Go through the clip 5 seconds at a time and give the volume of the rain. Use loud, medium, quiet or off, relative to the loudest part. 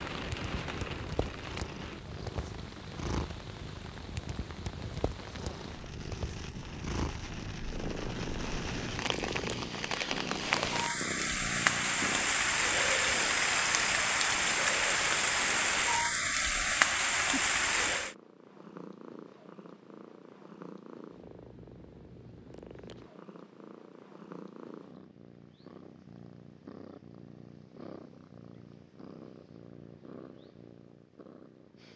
quiet, quiet, loud, loud, off, off, off.